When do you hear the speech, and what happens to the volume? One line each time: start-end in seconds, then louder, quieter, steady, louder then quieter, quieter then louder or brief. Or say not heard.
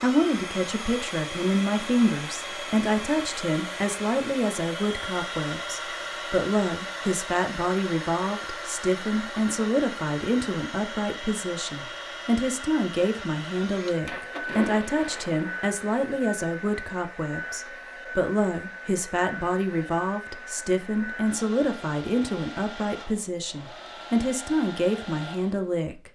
0.0-26.0 steady.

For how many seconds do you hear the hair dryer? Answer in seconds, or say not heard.
26 s.